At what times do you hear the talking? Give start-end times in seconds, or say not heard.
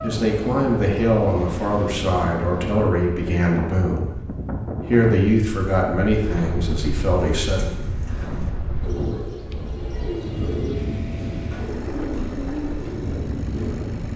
0.0-7.8.